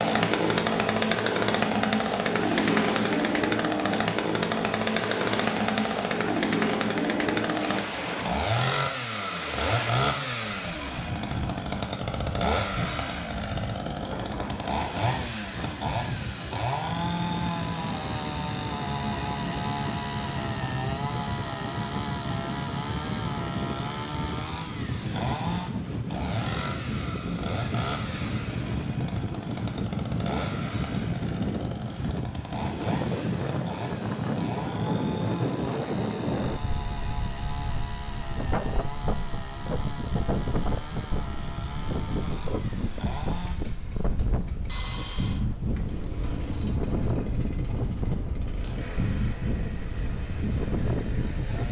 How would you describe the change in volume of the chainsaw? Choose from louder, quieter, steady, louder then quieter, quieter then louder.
quieter.